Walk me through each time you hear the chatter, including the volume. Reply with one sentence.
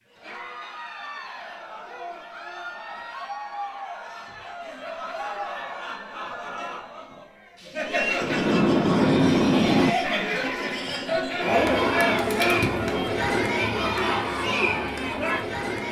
The chatter can be heard from 0.1 to 15.8 s, getting louder.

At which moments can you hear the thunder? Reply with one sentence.
You can hear the thunder from 8.2 to 9.9 s.